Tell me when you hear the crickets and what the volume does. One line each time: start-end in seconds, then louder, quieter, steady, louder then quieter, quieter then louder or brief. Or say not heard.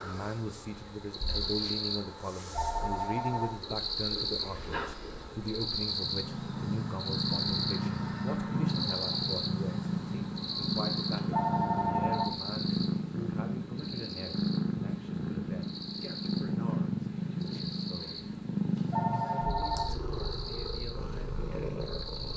0.0-22.3 quieter.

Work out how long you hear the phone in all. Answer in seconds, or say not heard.
3 s.